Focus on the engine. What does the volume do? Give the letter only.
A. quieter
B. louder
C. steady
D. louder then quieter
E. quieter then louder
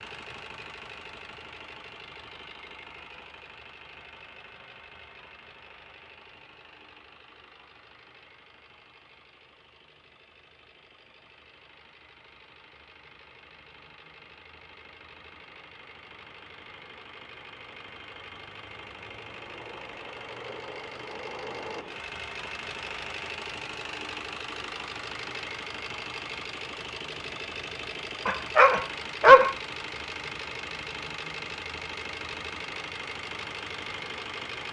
E.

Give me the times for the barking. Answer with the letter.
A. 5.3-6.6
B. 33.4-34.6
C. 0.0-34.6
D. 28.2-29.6
D.